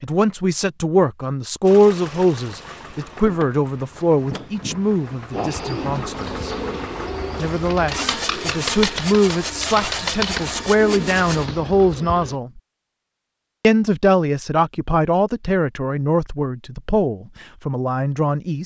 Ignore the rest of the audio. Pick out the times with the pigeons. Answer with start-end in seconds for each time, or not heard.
5.3-12.3.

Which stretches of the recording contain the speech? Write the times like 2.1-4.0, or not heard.
0.0-6.5, 7.3-12.6, 13.6-18.6.